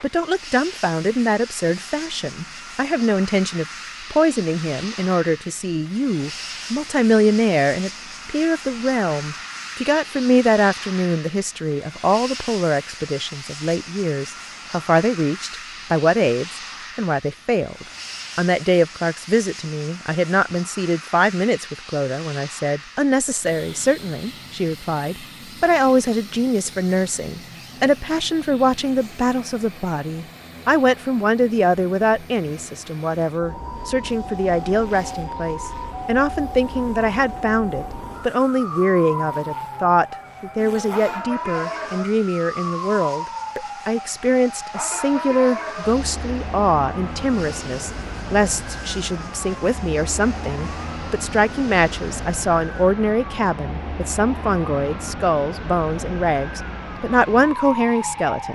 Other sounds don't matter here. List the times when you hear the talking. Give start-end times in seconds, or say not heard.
0.0-58.5.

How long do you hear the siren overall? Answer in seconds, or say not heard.
25 s.